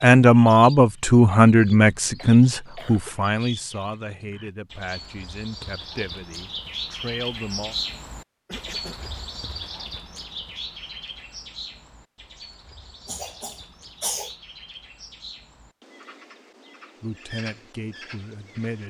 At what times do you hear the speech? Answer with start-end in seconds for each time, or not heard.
0.0-7.8, 17.0-18.8.